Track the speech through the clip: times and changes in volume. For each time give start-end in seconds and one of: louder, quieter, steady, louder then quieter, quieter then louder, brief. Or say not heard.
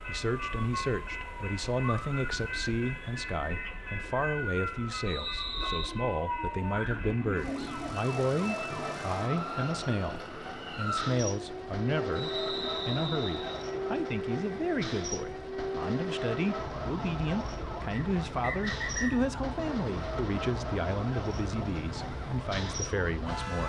0.1-23.6 steady.